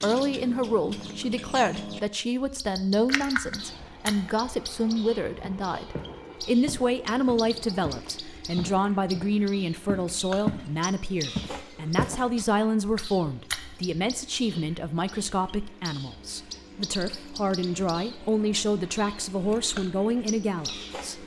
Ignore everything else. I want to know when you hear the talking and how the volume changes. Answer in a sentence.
The talking can be heard from 0.0 to 21.2 s, at a steady volume.